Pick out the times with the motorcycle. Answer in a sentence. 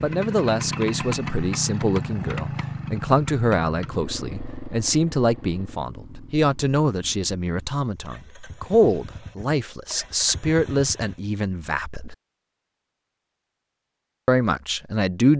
You can hear the motorcycle from 0.0 to 11.3 s.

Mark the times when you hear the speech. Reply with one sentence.
You can hear the speech from 0.0 to 12.2 s and from 14.2 to 15.3 s.